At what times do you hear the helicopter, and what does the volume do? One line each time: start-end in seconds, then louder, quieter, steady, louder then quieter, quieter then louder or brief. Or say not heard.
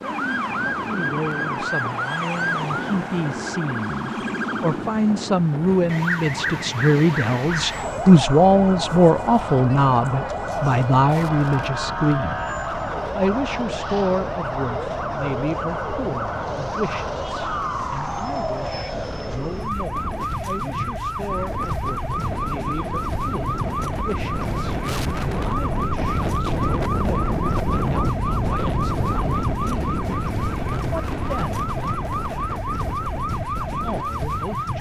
not heard.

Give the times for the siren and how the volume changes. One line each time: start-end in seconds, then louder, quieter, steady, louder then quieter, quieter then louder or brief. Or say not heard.
0.0-34.7 steady.